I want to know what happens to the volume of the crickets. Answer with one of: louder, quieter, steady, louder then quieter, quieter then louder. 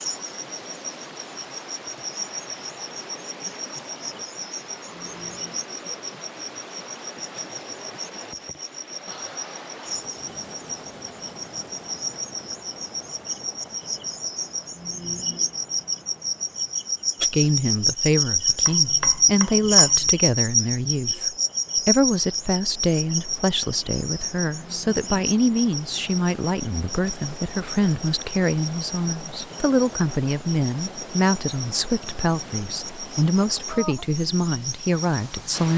louder then quieter.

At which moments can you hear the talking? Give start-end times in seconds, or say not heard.
17.2-35.7.